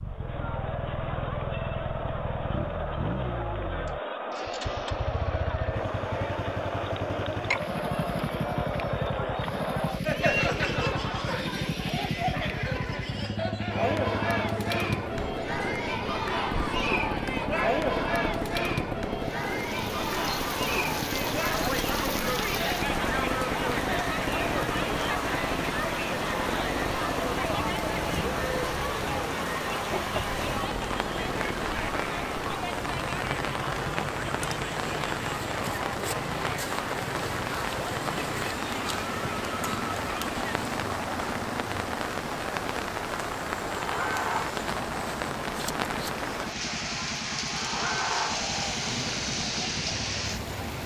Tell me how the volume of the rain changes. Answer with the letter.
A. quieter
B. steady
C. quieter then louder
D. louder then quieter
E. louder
B.